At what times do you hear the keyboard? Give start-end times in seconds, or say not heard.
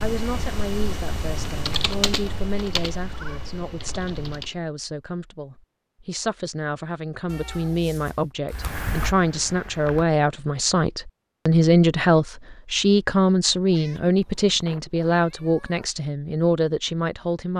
0.0-4.5, 8.5-10.1.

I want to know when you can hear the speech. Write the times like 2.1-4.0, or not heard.
0.0-17.5.